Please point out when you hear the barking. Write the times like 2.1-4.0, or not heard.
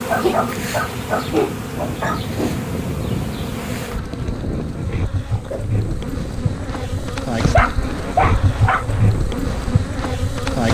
0.1-2.2, 7.5-8.8.